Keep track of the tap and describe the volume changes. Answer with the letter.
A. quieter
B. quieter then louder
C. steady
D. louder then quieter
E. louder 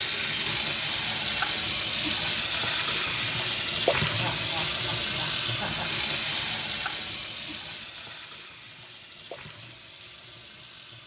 A.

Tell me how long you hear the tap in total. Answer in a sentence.
You can hear the tap for 11 seconds altogether.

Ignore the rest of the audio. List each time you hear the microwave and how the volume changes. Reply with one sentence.
You can't hear the microwave here.